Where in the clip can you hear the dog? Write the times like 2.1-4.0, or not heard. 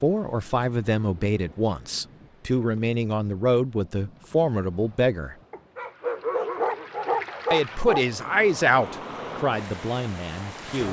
5.5-8.1.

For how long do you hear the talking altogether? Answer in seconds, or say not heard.
9 s.